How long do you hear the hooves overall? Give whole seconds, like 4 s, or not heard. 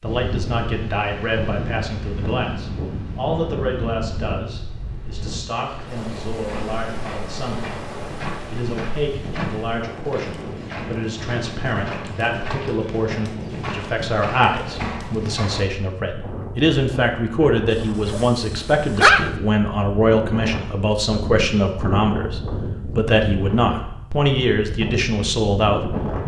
9 s.